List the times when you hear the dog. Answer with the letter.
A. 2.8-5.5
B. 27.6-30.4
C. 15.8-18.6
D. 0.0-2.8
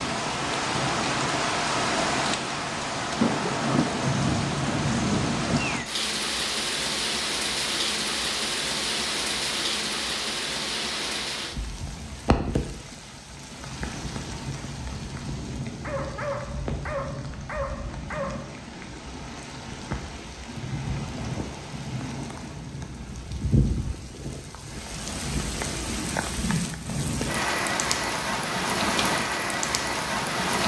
C.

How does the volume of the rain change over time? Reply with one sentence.
The loudness of the rain goes down, then up.